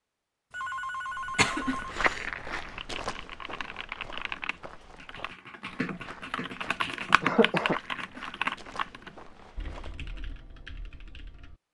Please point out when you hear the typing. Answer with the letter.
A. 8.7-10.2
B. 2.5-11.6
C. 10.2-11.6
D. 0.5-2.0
B.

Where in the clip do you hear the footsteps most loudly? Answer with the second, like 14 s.
2 s.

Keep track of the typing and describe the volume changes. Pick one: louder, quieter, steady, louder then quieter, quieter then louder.
louder then quieter.